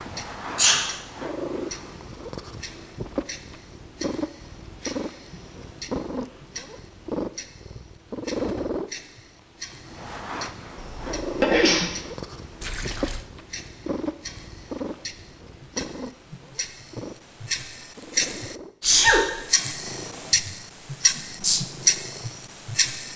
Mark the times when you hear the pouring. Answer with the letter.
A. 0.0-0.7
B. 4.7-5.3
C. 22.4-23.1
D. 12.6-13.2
D.